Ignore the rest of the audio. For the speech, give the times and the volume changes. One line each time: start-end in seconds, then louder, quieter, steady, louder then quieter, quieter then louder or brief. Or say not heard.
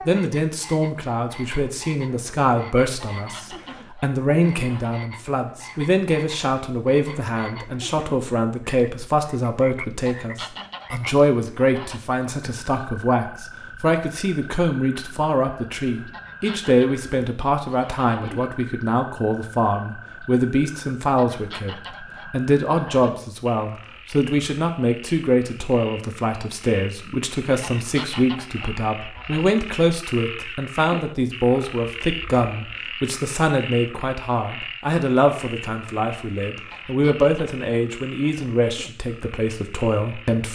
0.1-40.4 steady.